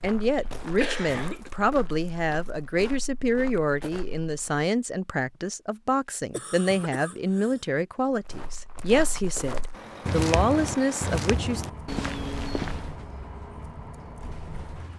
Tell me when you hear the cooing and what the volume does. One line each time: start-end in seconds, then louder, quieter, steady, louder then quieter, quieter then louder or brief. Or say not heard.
not heard.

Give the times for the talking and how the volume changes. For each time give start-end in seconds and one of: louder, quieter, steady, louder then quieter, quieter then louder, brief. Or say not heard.
0.0-11.7 steady.